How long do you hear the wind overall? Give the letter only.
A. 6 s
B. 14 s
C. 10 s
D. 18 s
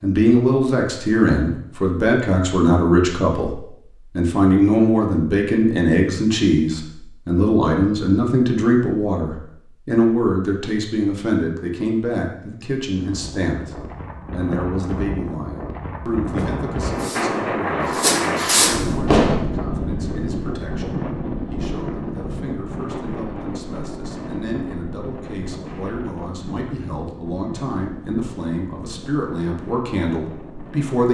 D.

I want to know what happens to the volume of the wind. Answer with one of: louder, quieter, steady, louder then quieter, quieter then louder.
louder then quieter.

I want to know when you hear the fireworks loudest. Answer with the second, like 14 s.
19 s.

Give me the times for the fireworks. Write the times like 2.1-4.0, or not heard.
16.4-19.4.